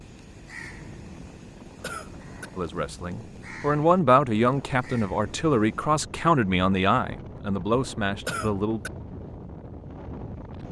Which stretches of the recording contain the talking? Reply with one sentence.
You can hear the talking from 2.5 to 8.8 s.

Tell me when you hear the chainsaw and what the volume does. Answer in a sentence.
The chainsaw can't be heard in this clip.